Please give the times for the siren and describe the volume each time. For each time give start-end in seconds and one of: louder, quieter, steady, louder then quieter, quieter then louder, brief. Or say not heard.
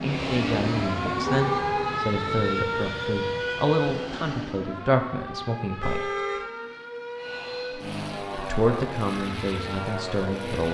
0.0-10.6 quieter.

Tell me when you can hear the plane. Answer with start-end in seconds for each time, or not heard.
0.0-4.5, 7.2-10.6.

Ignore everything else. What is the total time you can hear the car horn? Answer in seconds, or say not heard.
2 s.